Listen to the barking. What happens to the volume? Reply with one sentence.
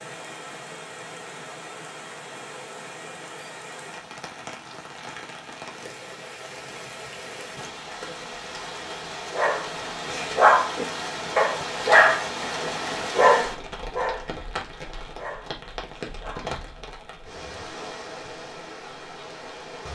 The loudness of the barking goes down.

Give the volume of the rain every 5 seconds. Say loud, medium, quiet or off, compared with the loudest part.
medium, medium, loud, medium.